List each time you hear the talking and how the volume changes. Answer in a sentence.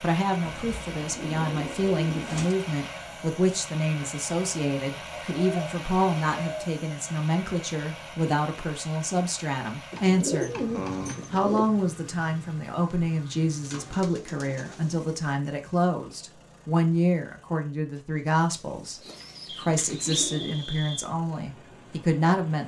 The talking can be heard from 0.0 to 10.5 s, at a steady volume; and from 11.3 to 22.6 s, at a steady volume.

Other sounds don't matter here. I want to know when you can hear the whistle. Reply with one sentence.
You can hear the whistle from 19.4 to 21.1 s.